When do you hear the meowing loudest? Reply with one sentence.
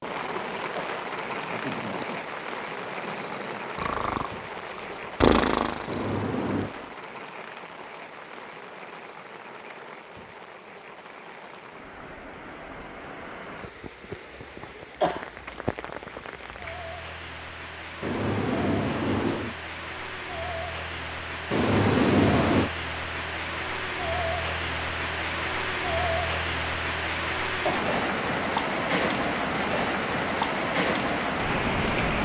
The loudest moment of the meowing is at 22 seconds.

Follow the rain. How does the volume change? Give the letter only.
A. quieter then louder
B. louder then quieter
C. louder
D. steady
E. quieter
A.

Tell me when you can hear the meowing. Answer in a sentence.
The meowing can be heard from 5.8 to 6.8 s, from 18.0 to 19.6 s and from 21.5 to 22.7 s.